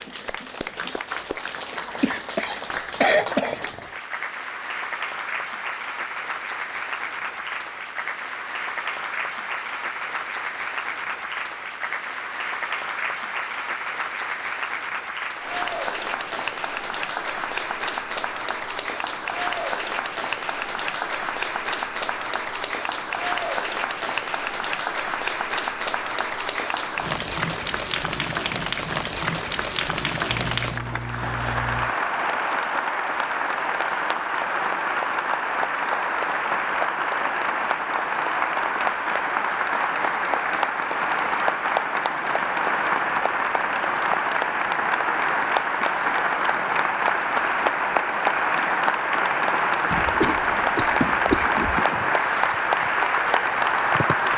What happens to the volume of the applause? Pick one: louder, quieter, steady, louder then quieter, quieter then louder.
louder.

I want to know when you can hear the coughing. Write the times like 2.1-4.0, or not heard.
2.0-3.9, 30.2-31.9, 49.9-51.6.